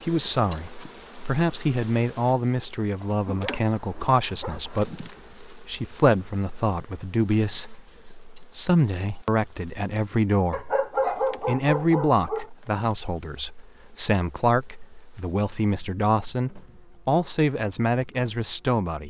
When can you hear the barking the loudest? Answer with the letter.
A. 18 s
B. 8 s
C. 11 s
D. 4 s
C.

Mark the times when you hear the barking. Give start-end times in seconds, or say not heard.
3.0-4.8, 10.5-12.5.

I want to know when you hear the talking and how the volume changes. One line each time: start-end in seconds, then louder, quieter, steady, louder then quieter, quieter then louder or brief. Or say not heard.
0.0-19.0 steady.